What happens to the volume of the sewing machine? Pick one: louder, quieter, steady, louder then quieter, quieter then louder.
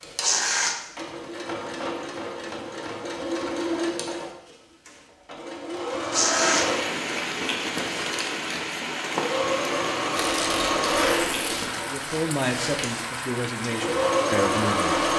louder.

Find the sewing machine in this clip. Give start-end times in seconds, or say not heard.
0.0-15.1.